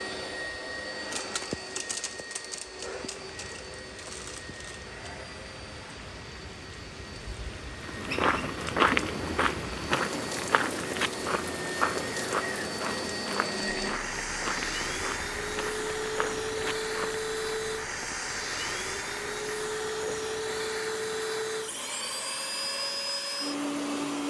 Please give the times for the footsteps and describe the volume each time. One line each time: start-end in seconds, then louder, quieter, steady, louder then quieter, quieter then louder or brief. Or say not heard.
7.8-17.2 quieter.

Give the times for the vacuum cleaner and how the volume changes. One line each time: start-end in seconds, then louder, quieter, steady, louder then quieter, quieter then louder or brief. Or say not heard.
0.0-24.2 quieter then louder.